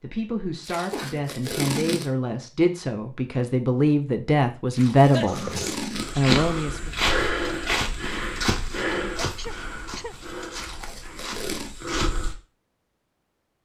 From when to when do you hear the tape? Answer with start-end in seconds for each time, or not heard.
0.6-2.1, 4.7-6.3, 10.5-11.8.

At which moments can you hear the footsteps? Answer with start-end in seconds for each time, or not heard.
6.0-12.4.